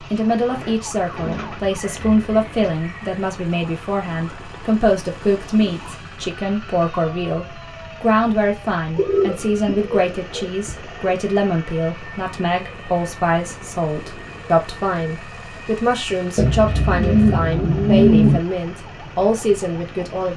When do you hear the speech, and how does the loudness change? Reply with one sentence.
You can hear the speech from 0.1 to 20.3 s, at a steady volume.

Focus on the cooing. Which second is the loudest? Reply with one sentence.
The volume of the cooing peaks at 18 seconds.